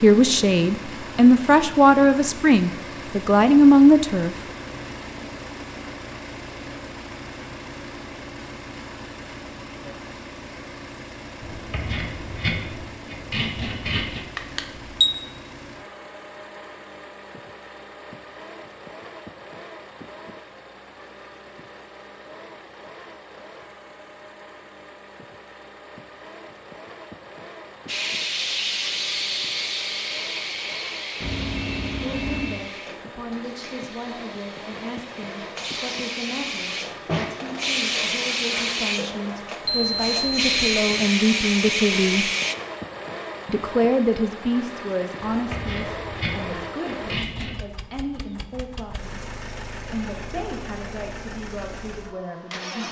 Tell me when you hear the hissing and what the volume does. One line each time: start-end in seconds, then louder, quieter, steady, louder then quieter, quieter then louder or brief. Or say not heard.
27.9-42.5 quieter then louder.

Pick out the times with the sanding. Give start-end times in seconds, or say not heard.
11.4-14.2, 45.2-47.6.